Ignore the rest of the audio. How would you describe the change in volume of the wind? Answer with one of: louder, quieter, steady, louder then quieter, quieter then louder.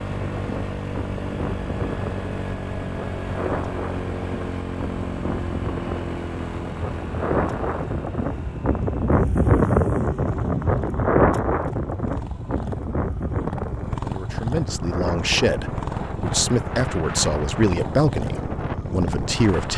louder then quieter.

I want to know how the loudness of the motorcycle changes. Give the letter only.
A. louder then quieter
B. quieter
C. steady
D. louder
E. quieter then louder
E.